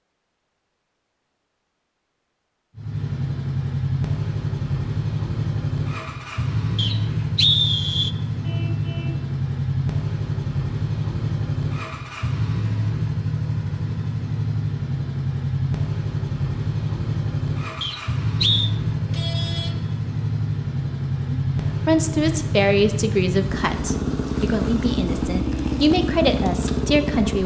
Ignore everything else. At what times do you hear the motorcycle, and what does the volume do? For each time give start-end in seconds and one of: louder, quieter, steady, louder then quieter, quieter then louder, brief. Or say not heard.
2.8-27.4 steady.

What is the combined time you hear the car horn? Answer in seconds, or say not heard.
2 s.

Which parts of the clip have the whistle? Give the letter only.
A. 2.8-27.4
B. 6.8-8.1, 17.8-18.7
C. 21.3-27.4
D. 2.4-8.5
B.